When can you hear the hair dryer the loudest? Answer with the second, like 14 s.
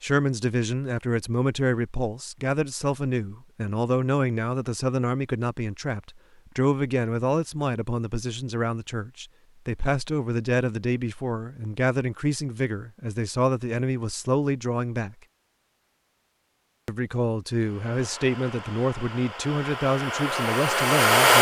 21 s.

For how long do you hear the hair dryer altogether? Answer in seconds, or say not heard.
4 s.